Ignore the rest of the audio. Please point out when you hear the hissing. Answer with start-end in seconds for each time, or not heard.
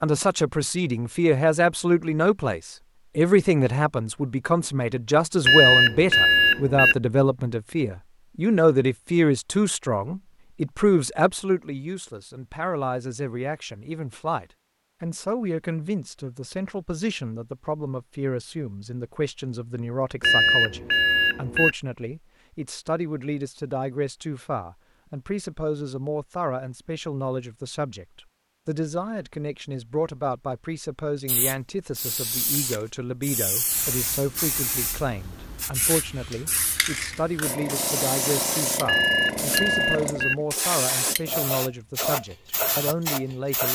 31.2-43.6.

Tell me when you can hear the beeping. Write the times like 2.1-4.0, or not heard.
5.5-7.0, 20.2-21.8, 38.9-40.4.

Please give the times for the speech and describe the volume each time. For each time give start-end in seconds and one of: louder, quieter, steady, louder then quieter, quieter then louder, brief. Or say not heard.
0.0-43.6 quieter.